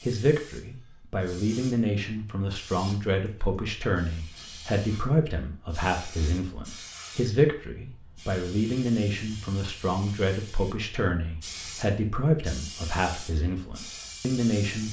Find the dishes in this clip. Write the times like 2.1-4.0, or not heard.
not heard.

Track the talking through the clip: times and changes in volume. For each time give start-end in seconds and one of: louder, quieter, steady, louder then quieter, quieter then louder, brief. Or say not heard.
0.0-14.8 steady.